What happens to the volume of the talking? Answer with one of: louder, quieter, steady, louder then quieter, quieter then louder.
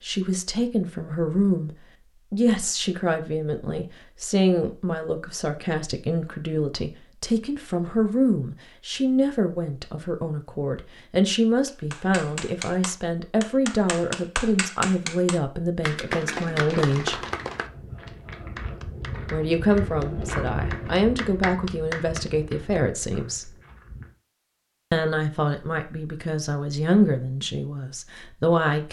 steady.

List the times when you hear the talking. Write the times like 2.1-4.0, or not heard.
0.0-17.2, 19.2-23.6, 24.9-28.8.